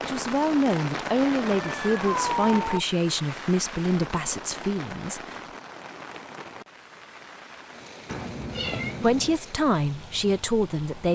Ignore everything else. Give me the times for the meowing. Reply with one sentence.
The meowing can be heard from 1.4 to 2.5 s and from 8.1 to 9.3 s.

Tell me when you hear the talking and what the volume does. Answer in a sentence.
The talking can be heard from 0.0 to 5.4 s, getting quieter; and briefly from 9.0 to 11.1 s.